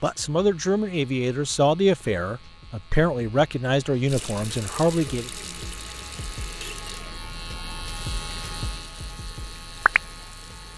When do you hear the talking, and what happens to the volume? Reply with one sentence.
The talking can be heard from 0.0 to 5.3 s, at a steady volume.